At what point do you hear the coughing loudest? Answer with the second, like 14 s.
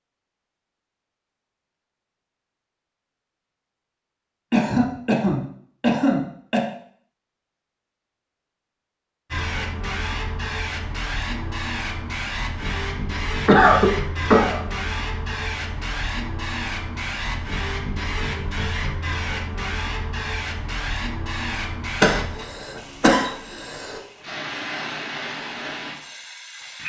14 s.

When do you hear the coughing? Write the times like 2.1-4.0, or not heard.
4.5-6.7, 13.4-14.6, 22.0-24.0.